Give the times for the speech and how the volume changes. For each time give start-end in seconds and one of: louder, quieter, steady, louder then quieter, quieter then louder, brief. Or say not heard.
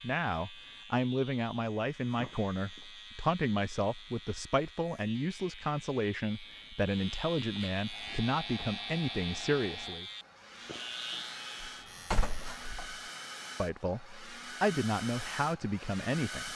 0.0-10.1 steady
13.6-16.5 brief.